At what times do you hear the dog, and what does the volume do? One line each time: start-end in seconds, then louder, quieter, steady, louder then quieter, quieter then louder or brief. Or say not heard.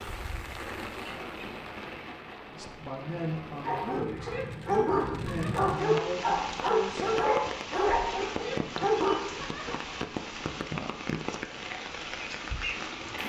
3.6-9.8 steady.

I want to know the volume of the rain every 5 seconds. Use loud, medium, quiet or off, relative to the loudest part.
medium, loud, loud.